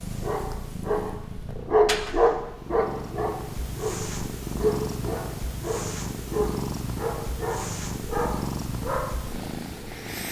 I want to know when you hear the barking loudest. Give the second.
2 s.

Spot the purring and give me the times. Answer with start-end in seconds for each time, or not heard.
0.0-10.2.